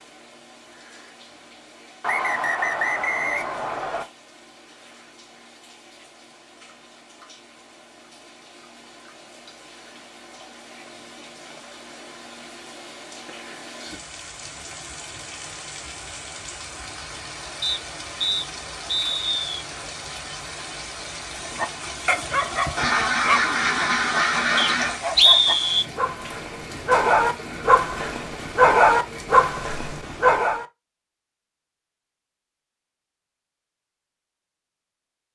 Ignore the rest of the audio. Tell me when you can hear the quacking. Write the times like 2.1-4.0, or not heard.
22.8-25.0.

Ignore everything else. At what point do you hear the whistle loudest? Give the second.
25 s.